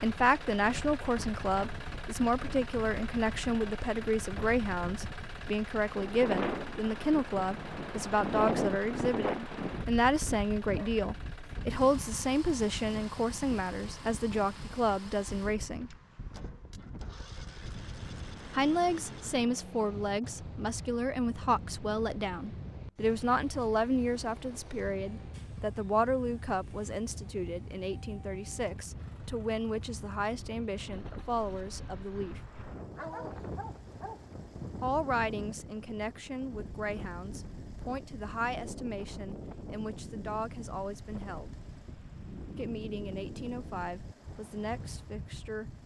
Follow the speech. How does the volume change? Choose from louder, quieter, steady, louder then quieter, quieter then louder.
quieter.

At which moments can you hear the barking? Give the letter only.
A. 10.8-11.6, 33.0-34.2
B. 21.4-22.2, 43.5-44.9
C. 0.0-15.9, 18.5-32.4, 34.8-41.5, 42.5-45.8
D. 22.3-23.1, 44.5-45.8
A.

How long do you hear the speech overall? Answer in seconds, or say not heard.
40 s.